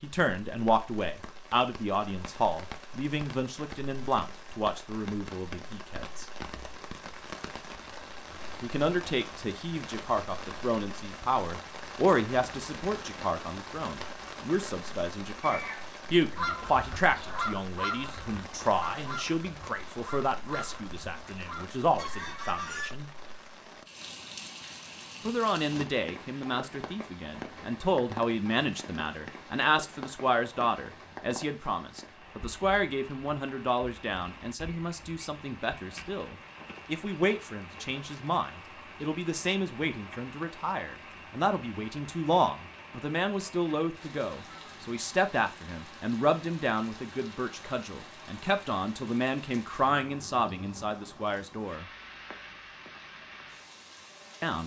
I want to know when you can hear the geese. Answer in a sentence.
The geese can be heard from 15.4 to 22.9 s.